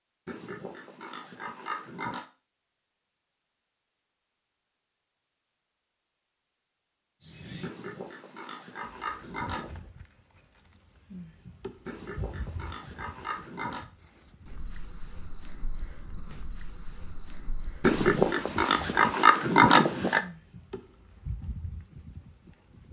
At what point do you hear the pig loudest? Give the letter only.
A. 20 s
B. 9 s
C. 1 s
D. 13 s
A.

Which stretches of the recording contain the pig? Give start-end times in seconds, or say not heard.
0.2-2.2, 7.6-9.8, 11.8-13.8, 17.8-20.2.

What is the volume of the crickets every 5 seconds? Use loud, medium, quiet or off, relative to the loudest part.
off, loud, loud, loud, loud.